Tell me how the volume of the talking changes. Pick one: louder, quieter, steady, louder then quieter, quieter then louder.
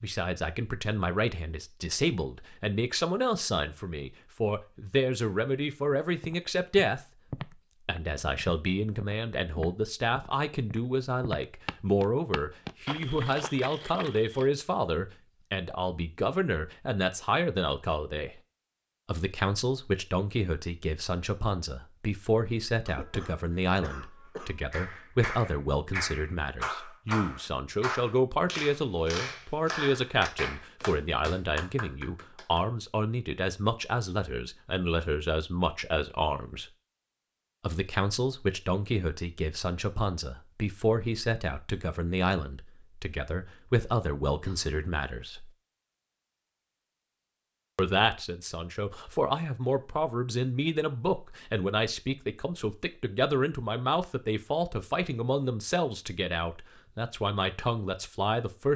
steady.